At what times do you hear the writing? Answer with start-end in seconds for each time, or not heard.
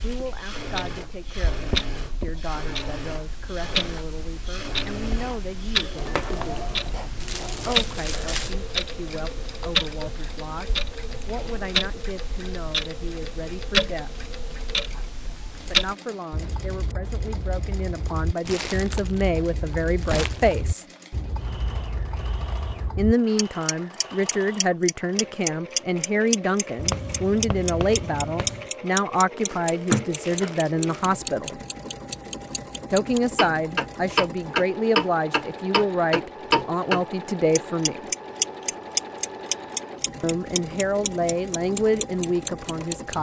6.0-8.6, 26.8-28.7.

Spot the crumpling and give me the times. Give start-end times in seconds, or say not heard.
7.2-8.6, 18.4-19.2, 20.0-20.6, 29.4-31.1.